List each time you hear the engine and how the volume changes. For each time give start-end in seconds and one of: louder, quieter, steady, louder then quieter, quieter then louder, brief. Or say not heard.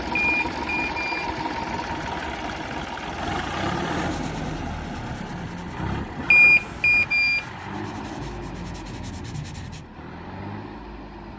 0.0-11.3 quieter.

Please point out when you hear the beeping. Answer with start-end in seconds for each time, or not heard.
0.1-1.3, 6.3-7.5.